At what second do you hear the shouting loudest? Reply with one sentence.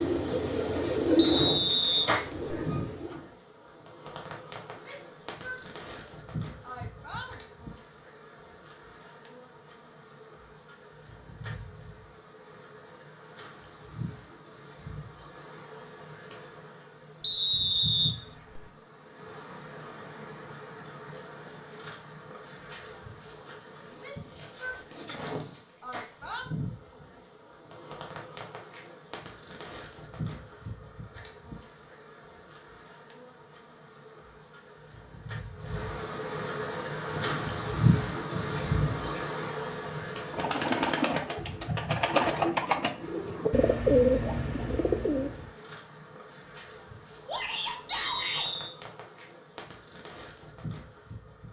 The loudest moment of the shouting is at 48 seconds.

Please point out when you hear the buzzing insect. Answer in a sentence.
The buzzing insect can be heard from 0.1 to 51.4 s.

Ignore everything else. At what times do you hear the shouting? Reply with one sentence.
You can hear the shouting from 4.7 to 7.4 s, from 23.9 to 26.4 s and from 47.2 to 48.5 s.